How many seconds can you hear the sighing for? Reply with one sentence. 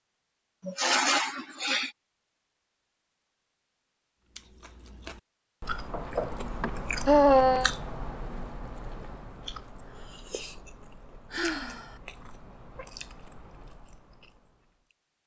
You can hear the sighing for 3 seconds altogether.